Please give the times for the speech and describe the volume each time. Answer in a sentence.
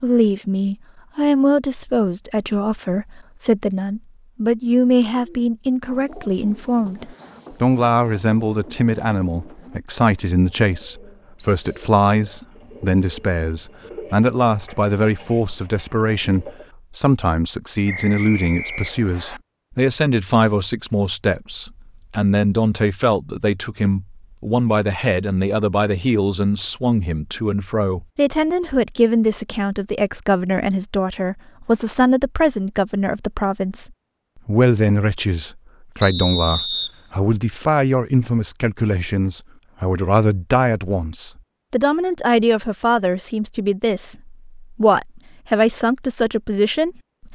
You can hear the speech from 0.0 to 47.3 s, at a steady volume.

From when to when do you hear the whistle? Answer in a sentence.
The whistle can be heard from 11.3 to 11.9 s, from 17.9 to 19.4 s and from 36.0 to 36.9 s.